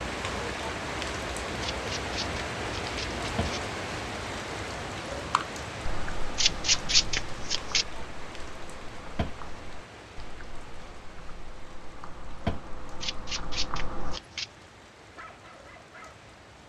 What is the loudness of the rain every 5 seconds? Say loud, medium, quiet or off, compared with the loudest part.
loud, medium, quiet, quiet.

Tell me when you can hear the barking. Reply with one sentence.
The barking can be heard from 15.2 to 16.6 s.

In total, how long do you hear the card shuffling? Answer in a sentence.
You can hear the card shuffling for 5 seconds altogether.